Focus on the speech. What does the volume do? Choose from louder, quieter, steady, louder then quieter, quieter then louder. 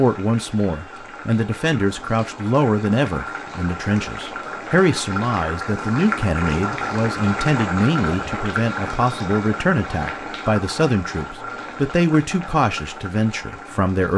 steady.